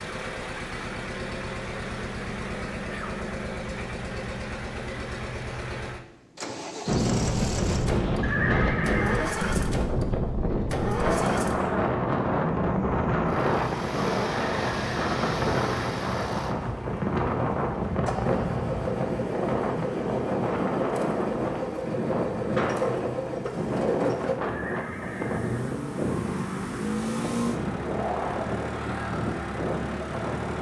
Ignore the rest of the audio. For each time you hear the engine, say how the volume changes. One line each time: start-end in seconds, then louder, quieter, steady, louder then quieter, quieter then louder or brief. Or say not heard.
0.0-30.5 steady.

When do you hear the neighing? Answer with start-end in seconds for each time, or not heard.
8.2-9.6, 24.4-25.8.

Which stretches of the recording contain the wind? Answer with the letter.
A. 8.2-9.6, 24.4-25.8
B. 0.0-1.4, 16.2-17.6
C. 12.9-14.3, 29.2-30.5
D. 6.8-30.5
D.